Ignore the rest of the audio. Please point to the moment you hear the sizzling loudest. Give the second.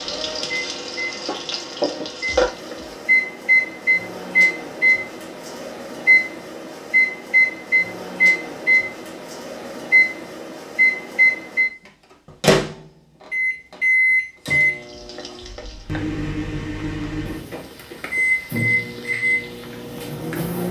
2 s.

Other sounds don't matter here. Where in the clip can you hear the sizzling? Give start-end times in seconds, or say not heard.
0.0-3.0, 14.8-20.4.